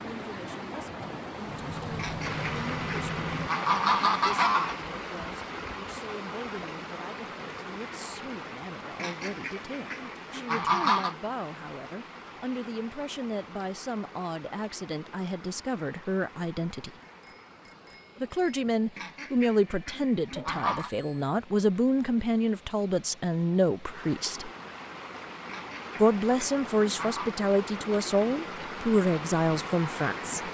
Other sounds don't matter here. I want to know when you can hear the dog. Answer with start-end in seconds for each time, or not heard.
not heard.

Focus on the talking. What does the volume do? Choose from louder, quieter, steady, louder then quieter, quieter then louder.
louder.